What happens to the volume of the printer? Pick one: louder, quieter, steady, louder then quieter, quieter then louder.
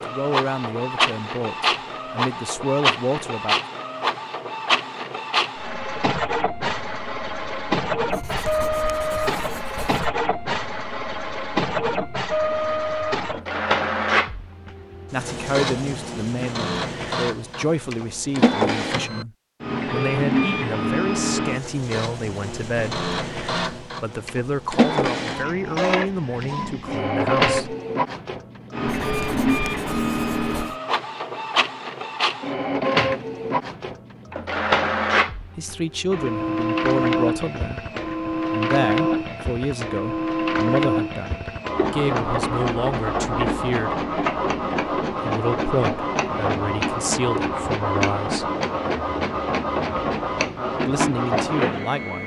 steady.